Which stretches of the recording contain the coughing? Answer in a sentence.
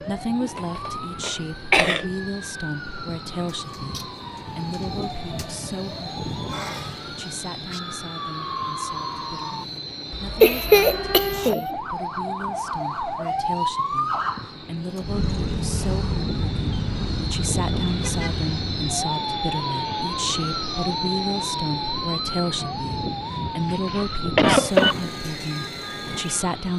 The coughing can be heard from 0.6 to 2.0 s, from 10.4 to 11.7 s and from 23.9 to 24.9 s.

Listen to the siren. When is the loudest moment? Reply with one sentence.
The volume of the siren peaks at 14 seconds.